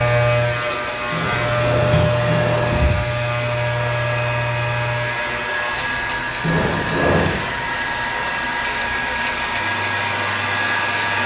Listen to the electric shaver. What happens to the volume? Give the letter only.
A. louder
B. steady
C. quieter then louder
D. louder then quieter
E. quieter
E.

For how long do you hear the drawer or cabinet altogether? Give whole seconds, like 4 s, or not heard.
3 s.